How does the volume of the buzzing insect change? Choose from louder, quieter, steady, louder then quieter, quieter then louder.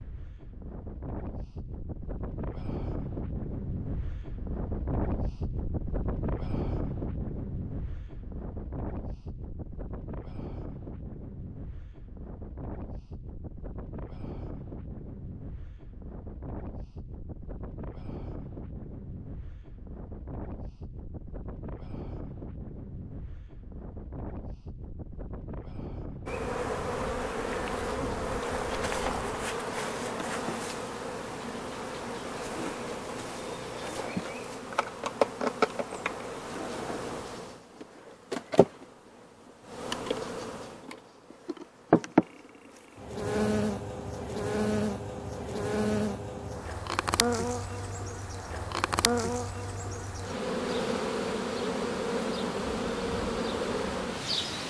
steady.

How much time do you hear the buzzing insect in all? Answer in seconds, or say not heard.
28 s.